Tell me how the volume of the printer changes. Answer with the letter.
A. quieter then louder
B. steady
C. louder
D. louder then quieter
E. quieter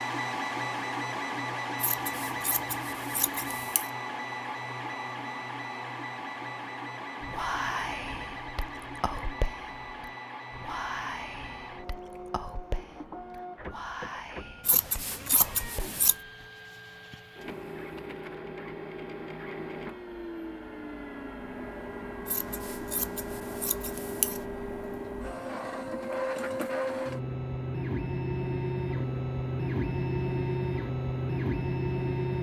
A.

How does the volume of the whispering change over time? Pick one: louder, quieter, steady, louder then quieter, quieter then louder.
quieter.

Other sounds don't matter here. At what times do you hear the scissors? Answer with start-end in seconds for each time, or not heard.
1.8-3.9, 14.7-16.1, 22.2-24.4.